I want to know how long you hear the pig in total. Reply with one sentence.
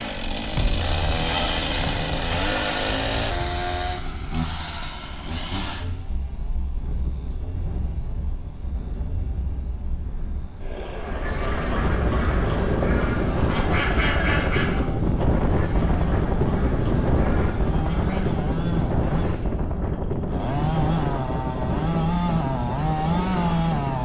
The pig can't be heard in this clip.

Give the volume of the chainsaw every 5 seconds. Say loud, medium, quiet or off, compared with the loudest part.
loud, quiet, quiet, medium, loud.